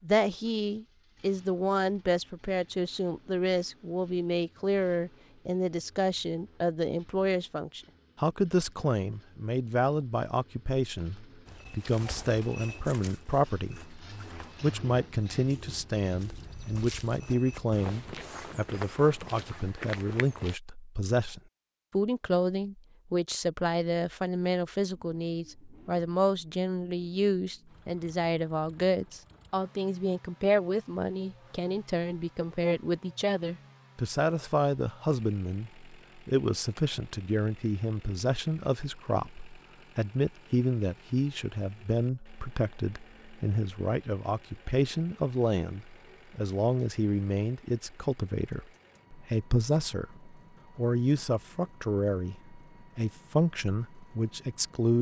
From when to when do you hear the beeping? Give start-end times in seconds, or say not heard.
not heard.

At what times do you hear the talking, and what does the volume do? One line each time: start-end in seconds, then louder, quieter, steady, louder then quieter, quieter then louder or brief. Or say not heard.
0.0-54.9 steady.